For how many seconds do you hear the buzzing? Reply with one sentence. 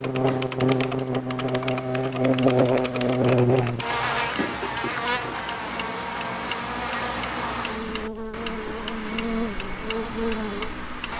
The buzzing can be heard for 11 seconds in total.